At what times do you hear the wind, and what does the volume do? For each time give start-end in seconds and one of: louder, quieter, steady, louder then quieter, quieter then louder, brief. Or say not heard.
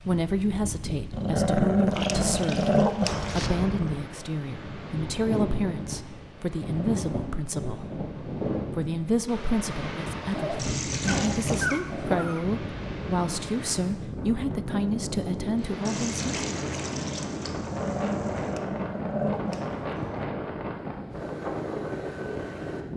0.0-22.9 steady.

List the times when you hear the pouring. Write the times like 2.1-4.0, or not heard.
1.9-3.5, 10.6-11.8, 15.8-18.6.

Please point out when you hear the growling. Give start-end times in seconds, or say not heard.
1.1-3.5, 10.3-12.4, 17.6-20.2.